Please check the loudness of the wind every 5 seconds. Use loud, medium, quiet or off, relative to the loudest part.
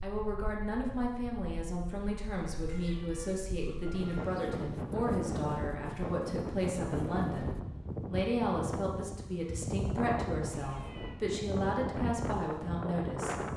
medium, loud, loud.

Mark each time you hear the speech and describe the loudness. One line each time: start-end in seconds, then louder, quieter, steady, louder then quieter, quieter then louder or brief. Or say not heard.
0.0-13.3 steady.